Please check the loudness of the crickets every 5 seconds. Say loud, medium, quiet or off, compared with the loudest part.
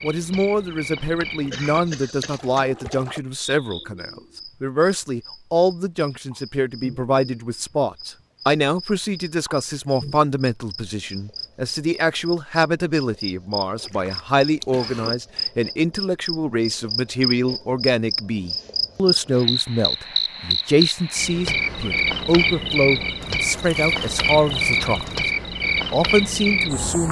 quiet, quiet, medium, loud, loud, loud.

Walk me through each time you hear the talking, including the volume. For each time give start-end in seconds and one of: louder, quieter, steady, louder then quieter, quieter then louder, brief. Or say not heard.
0.0-27.0 steady.